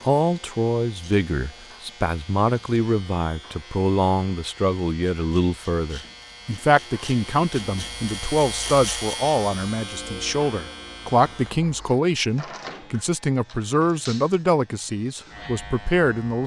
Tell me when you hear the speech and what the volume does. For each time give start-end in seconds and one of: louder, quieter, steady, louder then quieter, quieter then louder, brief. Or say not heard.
0.0-16.4 steady.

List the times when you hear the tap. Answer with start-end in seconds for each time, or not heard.
not heard.